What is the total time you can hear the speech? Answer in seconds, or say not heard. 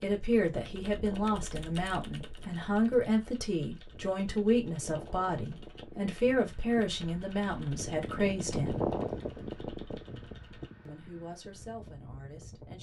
11 s.